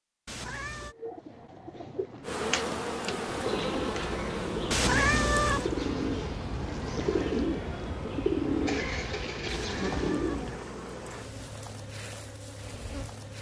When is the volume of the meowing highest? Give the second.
5 s.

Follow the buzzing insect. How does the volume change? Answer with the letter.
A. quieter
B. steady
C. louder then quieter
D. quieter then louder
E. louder
A.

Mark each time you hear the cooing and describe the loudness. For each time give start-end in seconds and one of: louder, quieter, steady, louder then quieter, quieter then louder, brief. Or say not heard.
0.9-10.7 louder.